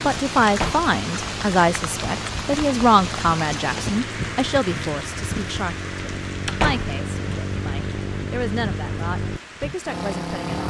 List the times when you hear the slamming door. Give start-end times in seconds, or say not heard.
0.5-0.9, 6.5-7.0.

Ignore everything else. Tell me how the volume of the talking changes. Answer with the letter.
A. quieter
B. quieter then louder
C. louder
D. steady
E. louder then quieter
A.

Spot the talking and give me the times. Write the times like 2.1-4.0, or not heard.
0.0-10.4.